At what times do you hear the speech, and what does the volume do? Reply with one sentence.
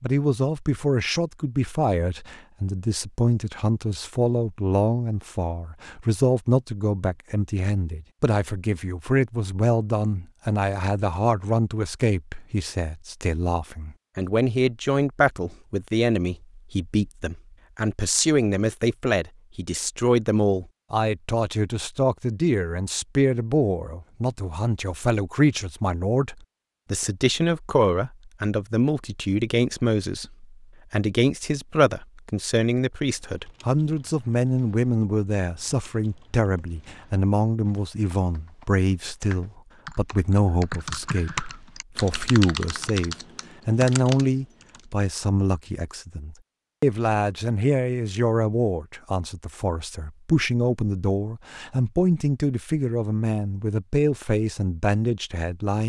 The speech can be heard from 0.0 to 55.8 s, at a steady volume.